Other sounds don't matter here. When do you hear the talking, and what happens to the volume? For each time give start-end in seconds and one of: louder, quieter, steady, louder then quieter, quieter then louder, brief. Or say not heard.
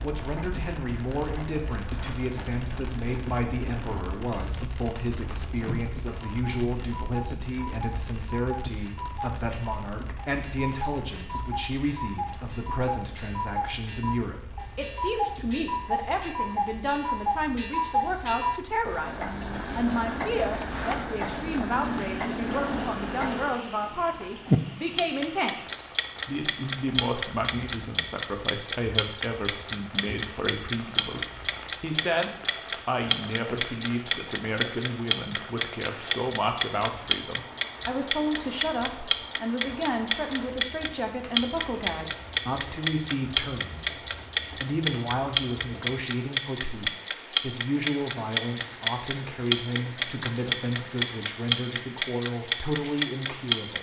0.0-53.7 steady.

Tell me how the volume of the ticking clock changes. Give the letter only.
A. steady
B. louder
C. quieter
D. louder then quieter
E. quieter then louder
B.